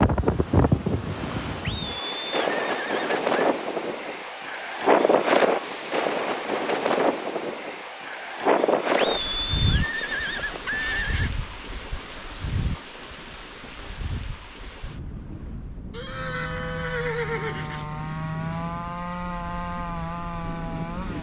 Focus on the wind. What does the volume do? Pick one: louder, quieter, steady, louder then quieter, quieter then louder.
quieter.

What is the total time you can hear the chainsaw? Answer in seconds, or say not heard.
5 s.